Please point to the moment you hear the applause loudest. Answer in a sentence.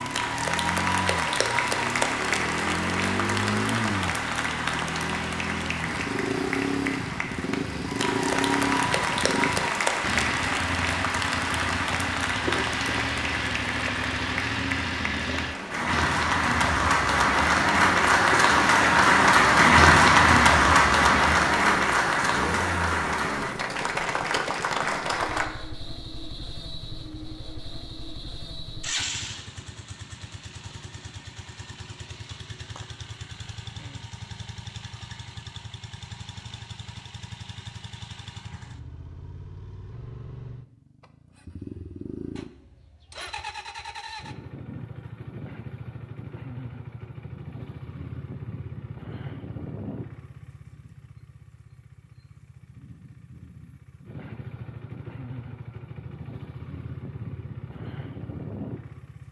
The volume of the applause peaks at 20 seconds.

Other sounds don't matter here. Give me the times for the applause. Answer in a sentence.
The applause can be heard from 0.0 to 25.4 s.